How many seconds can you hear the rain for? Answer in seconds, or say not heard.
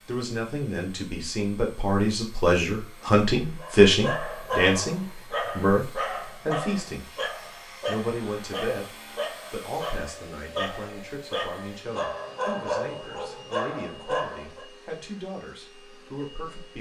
not heard.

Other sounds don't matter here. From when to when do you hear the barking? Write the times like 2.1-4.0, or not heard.
3.6-14.7.